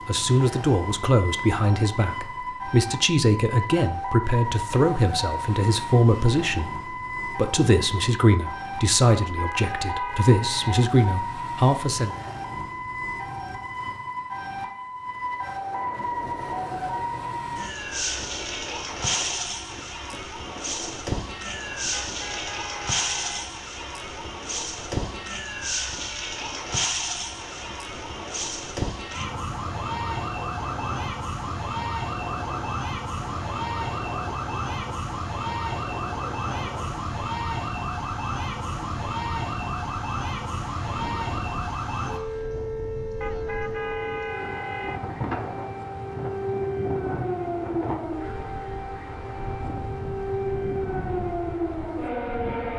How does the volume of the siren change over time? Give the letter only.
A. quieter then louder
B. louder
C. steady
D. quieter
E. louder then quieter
C.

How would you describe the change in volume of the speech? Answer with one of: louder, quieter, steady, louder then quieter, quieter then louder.
steady.